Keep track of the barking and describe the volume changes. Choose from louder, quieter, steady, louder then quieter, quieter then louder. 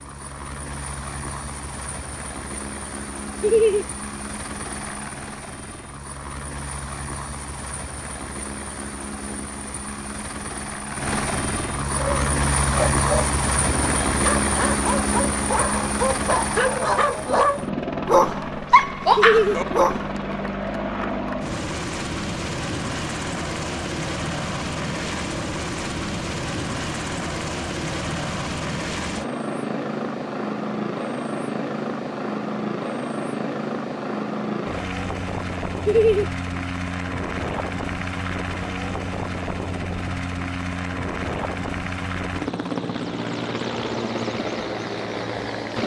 louder.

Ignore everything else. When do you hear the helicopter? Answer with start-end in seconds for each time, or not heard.
0.0-45.8.